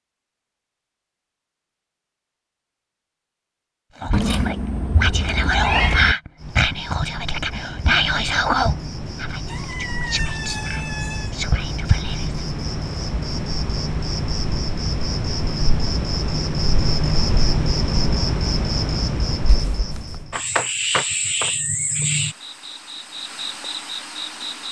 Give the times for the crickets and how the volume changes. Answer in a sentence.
The crickets can be heard from 6.3 to 24.6 s, getting louder.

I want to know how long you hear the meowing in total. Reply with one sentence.
The meowing can be heard for 4 seconds in total.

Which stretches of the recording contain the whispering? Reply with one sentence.
The whispering can be heard from 4.0 to 12.4 s.